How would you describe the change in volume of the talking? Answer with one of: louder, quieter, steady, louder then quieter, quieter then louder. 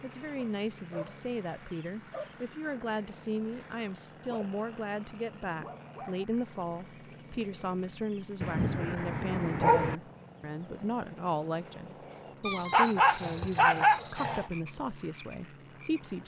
steady.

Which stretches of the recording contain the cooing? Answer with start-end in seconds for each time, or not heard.
not heard.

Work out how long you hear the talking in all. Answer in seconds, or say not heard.
16 s.